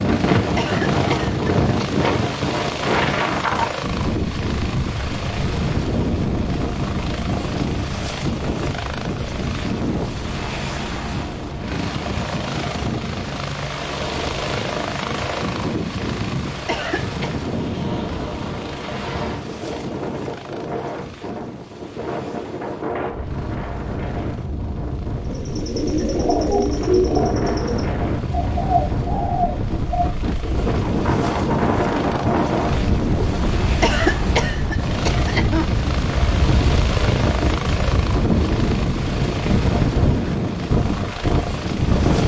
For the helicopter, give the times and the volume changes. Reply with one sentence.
You can hear the helicopter from 0.0 to 42.2 s, getting quieter then louder.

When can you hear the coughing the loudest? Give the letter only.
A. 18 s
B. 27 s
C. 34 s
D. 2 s
C.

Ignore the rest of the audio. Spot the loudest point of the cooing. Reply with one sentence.
The loudest moment of the cooing is at 27 seconds.